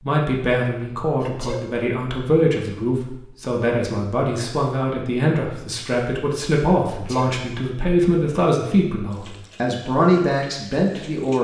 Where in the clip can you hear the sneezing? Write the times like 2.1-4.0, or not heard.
1.2-1.6, 6.8-7.3.